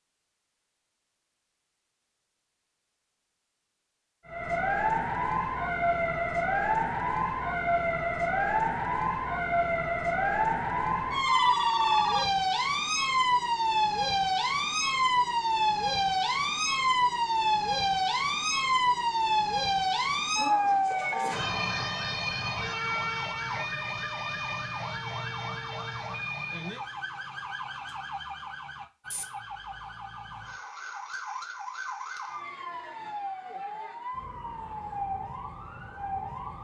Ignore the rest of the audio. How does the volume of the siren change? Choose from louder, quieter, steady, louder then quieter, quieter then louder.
quieter.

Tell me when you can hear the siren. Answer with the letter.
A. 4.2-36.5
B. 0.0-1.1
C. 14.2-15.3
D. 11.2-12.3
A.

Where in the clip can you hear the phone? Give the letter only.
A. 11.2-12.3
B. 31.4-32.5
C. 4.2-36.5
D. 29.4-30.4
A.